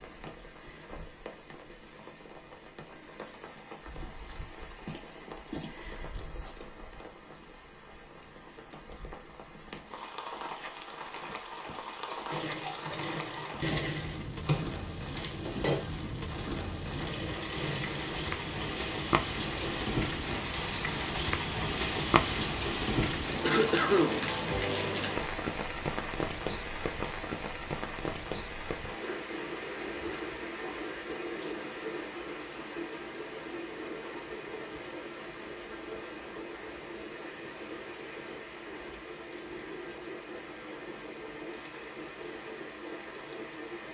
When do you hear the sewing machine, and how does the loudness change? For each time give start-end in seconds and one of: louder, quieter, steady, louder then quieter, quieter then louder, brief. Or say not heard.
12.3-19.9 quieter.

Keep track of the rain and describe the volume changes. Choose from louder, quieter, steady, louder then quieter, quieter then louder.
louder then quieter.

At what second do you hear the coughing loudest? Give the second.
24 s.